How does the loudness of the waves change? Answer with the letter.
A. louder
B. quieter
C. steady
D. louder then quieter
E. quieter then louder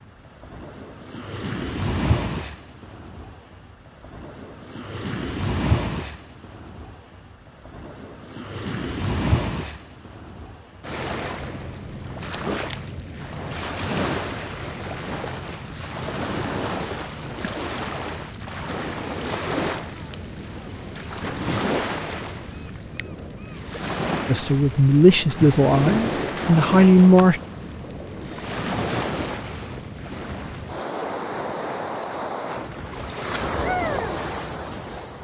C.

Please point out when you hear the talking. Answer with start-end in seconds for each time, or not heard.
24.2-27.4.